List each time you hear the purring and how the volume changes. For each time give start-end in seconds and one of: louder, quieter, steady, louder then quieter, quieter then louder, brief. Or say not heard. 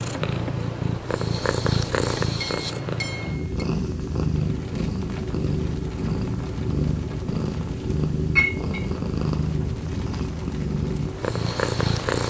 0.0-12.2 steady.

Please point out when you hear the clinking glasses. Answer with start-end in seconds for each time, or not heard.
2.4-3.6, 8.3-8.8.